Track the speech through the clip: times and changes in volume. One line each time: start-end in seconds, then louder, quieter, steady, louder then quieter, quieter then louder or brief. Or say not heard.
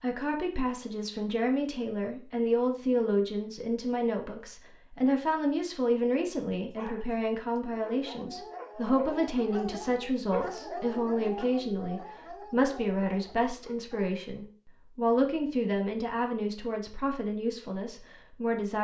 0.0-18.7 steady.